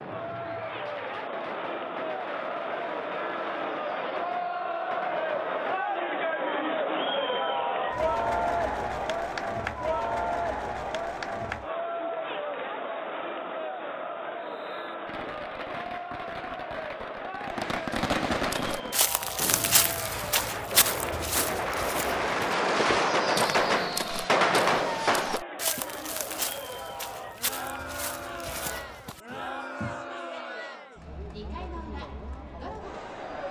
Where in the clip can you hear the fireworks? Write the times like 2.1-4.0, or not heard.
0.0-6.0, 14.4-25.8.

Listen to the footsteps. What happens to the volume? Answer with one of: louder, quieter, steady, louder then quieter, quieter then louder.
quieter.